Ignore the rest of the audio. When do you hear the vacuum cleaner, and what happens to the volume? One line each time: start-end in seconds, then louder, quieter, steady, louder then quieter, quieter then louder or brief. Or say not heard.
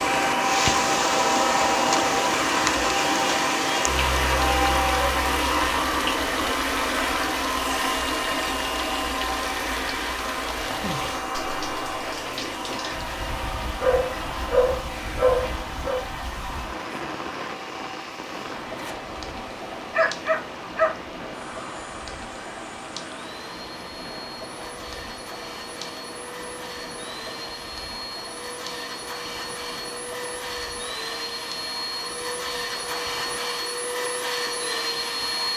0.0-35.5 quieter then louder.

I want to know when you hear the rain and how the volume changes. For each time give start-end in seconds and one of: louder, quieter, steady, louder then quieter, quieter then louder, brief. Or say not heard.
0.0-35.5 quieter.